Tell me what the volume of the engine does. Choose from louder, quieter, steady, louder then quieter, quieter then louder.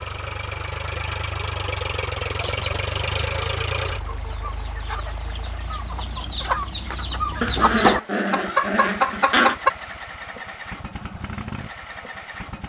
quieter then louder.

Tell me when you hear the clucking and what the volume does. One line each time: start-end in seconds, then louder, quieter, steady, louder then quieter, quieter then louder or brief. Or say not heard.
2.4-9.7 louder.